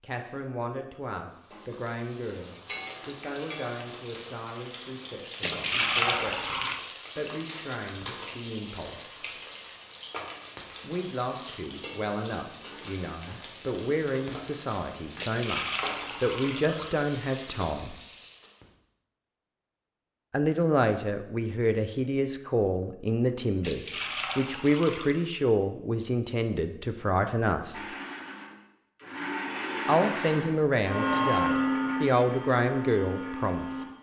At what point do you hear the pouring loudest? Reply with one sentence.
The volume of the pouring peaks at 6 seconds.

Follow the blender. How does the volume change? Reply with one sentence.
The loudness of the blender goes up, then down.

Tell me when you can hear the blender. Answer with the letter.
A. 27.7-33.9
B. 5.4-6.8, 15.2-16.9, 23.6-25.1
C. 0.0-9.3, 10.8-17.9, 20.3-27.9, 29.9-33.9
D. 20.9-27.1
A.